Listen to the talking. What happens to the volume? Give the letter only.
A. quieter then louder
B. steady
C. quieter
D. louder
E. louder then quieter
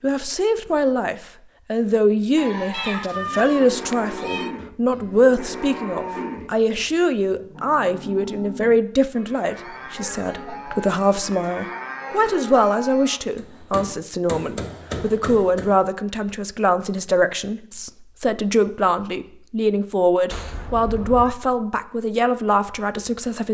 B.